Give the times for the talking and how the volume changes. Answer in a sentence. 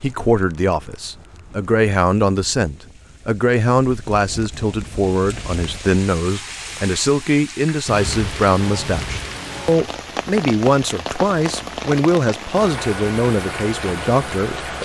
You can hear the talking from 0.0 to 14.8 s, at a steady volume.